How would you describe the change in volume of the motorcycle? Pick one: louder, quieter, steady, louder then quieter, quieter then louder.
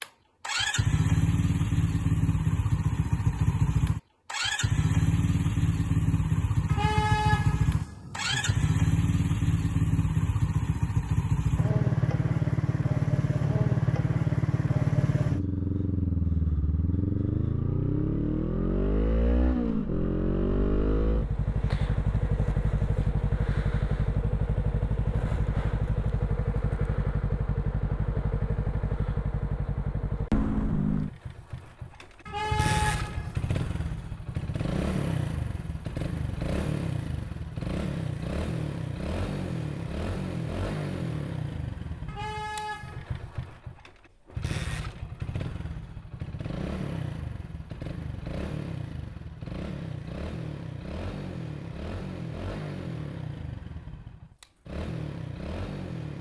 quieter.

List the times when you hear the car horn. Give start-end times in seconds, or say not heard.
6.7-8.7, 32.2-33.4, 42.0-43.1.